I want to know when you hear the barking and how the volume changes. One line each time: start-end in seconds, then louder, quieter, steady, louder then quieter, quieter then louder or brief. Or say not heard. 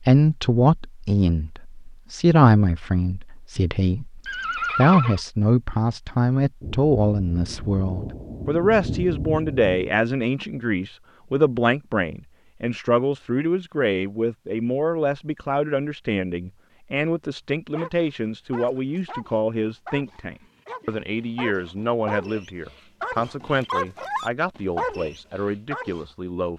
17.8-26.1 louder.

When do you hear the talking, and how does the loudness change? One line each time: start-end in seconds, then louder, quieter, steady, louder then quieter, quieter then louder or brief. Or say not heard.
0.1-26.5 quieter.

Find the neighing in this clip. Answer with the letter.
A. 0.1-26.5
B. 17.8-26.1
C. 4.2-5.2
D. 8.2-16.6
C.